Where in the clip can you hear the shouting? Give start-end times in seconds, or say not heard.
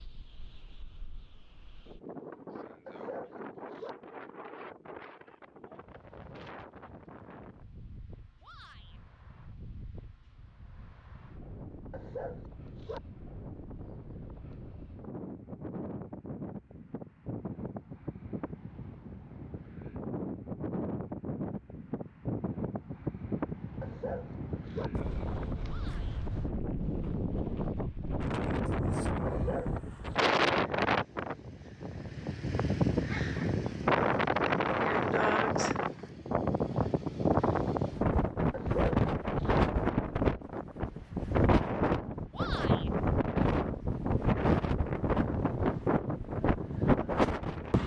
8.4-9.0, 25.6-26.2, 42.3-42.9.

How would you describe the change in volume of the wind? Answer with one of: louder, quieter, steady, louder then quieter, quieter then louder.
louder.